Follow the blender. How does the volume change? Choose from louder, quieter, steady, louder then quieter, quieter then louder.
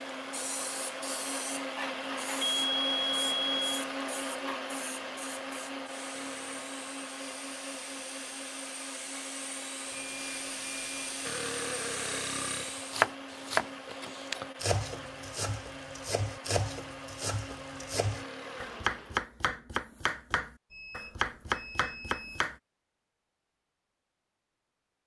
quieter.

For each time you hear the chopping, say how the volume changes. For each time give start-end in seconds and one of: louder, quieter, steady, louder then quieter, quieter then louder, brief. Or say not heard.
12.7-22.6 quieter then louder.